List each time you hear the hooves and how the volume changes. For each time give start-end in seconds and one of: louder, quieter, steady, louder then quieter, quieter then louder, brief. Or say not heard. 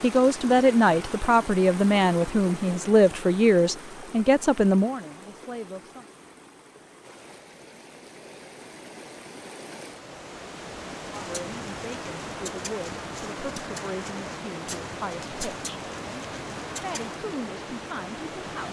11.2-17.2 steady.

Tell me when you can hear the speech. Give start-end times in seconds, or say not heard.
0.0-6.0, 11.1-18.6.